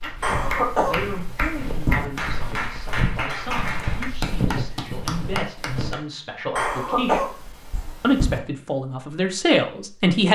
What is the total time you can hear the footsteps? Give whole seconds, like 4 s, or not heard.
6 s.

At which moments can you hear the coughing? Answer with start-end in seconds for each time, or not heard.
0.2-2.0, 6.5-8.4.